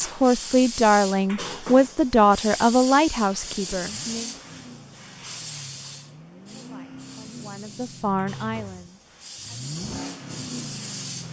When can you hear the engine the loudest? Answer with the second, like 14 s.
10 s.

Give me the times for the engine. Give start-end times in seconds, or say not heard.
3.4-11.2.